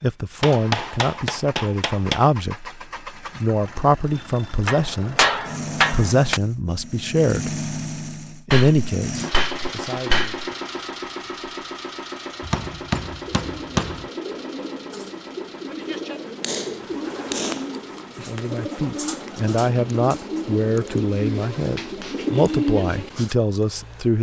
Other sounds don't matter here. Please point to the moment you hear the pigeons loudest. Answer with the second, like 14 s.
23 s.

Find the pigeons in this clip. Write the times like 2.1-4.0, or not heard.
13.2-23.4.